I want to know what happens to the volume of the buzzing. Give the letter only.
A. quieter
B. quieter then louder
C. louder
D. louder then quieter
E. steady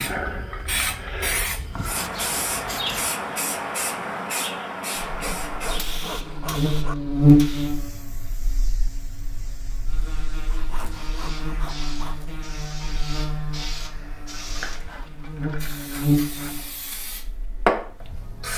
B.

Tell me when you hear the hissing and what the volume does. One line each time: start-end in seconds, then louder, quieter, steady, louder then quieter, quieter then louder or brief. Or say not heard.
0.0-18.5 quieter then louder.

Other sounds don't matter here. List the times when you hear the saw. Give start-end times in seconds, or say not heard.
1.4-3.1, 5.0-7.0, 10.5-12.2, 14.6-16.6.